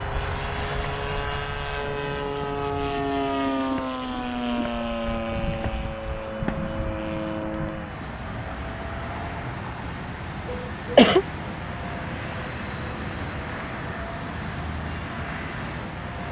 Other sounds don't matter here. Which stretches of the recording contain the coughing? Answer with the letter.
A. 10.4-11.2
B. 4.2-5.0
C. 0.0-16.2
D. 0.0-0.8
A.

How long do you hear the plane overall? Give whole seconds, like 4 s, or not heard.
16 s.